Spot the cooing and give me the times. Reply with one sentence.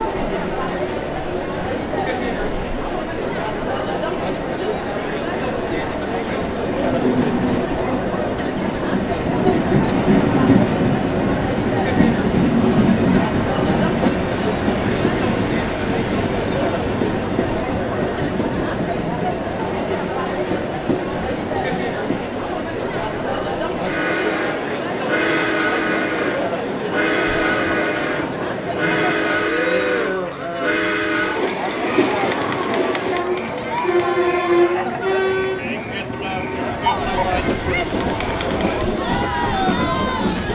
The cooing can't be heard in this clip.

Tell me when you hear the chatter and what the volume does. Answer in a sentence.
You can hear the chatter from 0.0 to 40.5 s, at a steady volume.